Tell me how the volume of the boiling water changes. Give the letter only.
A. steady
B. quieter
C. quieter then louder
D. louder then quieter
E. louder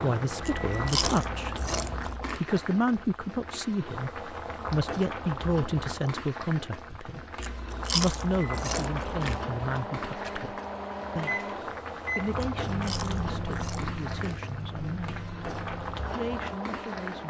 A.